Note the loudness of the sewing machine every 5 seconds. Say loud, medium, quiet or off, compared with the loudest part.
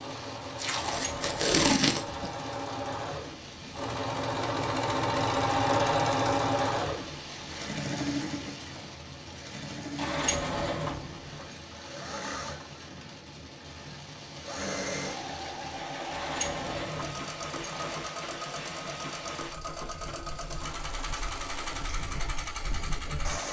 medium, loud, medium, medium, medium.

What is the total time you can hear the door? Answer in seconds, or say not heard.
4 s.